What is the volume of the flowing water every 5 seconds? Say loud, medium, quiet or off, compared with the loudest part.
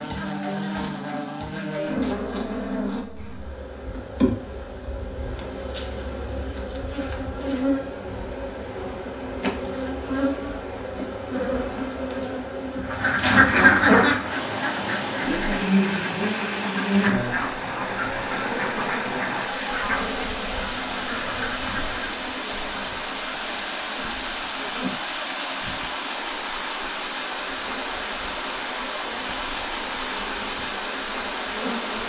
off, quiet, medium, loud, loud, loud, loud.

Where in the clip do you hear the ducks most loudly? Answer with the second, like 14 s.
14 s.